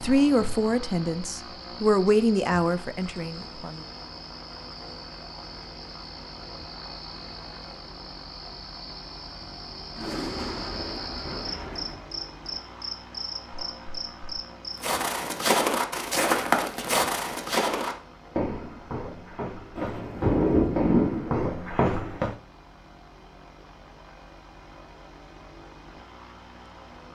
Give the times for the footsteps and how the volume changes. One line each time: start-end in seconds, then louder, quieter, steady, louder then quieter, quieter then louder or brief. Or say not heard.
14.8-22.4 quieter then louder.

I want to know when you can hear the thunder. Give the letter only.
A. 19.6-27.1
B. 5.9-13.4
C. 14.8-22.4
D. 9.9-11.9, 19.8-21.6
D.